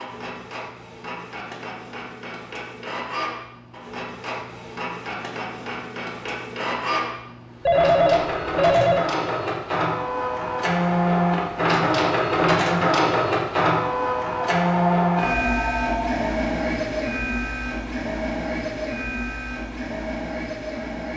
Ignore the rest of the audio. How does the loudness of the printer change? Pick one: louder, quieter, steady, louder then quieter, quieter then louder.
louder then quieter.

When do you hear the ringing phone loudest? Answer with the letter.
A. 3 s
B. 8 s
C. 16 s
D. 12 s
B.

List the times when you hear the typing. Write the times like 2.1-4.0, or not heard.
not heard.